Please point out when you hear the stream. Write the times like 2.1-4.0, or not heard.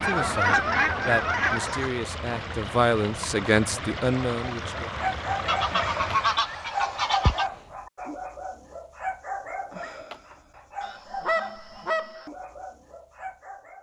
0.0-7.7.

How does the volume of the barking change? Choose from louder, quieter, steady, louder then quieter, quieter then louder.
quieter.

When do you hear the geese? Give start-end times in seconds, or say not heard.
0.0-1.9, 5.5-7.5, 10.8-12.3.